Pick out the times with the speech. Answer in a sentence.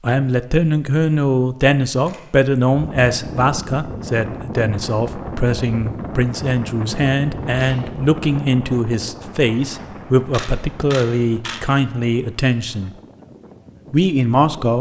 The speech can be heard from 0.0 to 12.9 s and from 13.9 to 14.7 s.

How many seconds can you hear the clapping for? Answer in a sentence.
The clapping can't be heard in this clip.